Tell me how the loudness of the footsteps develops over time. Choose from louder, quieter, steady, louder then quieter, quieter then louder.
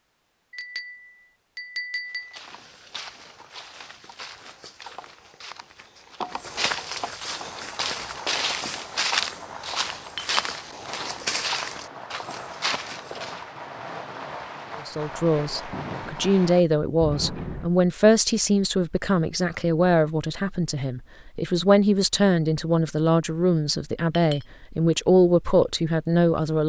louder.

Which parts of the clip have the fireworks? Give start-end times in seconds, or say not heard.
7.3-17.7.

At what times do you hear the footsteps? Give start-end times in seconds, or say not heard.
2.0-13.4.